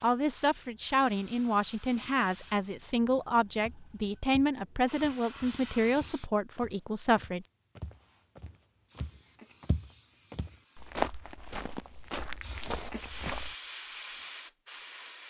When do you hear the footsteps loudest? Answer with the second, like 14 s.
11 s.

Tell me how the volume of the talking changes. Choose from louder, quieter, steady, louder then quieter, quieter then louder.
steady.